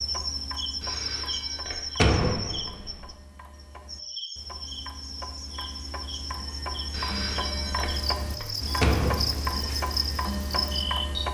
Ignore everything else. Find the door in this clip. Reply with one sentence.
The door can be heard from 1.9 to 3.0 s and from 8.8 to 9.6 s.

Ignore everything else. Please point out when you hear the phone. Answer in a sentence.
You can hear the phone from 0.8 to 2.1 s and from 6.9 to 8.6 s.